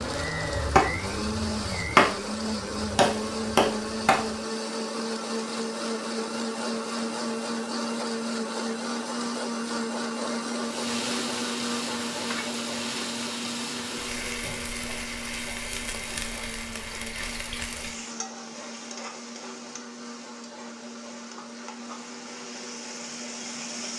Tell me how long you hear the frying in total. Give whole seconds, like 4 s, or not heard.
13 s.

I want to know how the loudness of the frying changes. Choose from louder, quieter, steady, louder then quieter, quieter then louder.
quieter.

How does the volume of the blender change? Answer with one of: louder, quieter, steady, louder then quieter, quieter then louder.
quieter.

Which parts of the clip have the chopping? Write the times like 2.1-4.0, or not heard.
0.0-4.2.